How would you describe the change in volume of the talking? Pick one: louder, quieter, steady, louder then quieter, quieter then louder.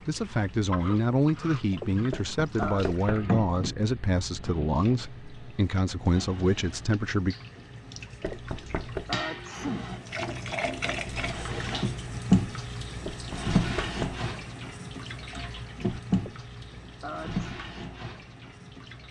steady.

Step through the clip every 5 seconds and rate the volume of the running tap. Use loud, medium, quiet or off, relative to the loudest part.
medium, medium, loud, medium.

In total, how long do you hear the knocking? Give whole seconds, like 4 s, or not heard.
3 s.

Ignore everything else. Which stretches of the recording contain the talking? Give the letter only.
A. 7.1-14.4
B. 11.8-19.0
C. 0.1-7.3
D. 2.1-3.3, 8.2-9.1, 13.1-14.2
C.